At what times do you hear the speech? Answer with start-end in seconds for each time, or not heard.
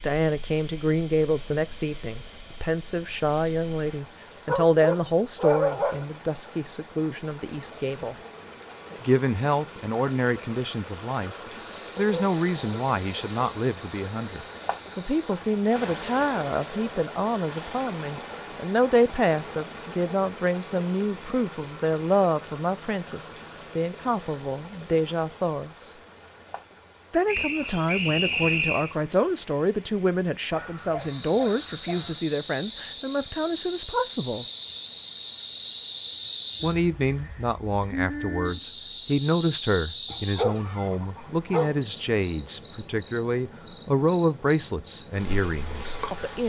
0.0-8.2, 9.0-11.3, 11.9-25.9, 27.1-34.5, 36.6-46.4.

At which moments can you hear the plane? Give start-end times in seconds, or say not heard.
not heard.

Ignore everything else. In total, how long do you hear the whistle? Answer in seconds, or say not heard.
2 s.